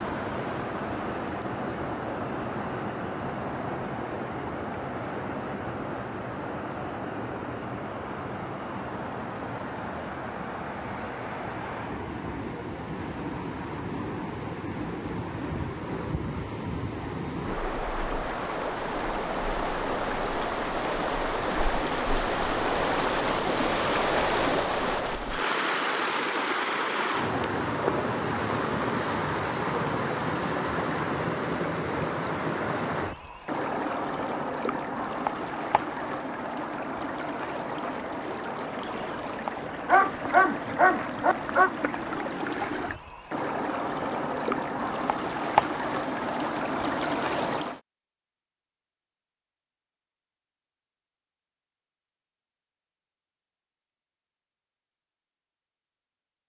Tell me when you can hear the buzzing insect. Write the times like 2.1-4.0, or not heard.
not heard.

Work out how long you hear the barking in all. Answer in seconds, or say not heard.
3 s.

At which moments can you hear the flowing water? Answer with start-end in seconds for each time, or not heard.
0.0-47.8.